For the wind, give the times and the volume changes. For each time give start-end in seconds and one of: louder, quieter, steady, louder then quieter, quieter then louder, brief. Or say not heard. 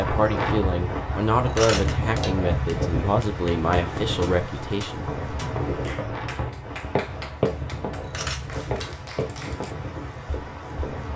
0.0-11.1 quieter.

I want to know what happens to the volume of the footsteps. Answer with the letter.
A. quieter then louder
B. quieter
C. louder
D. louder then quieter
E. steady
D.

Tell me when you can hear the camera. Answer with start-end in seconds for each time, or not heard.
1.4-2.4, 8.0-8.9.